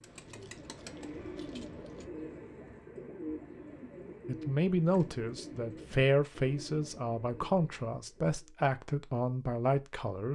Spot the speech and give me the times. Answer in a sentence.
You can hear the speech from 4.2 to 10.2 s.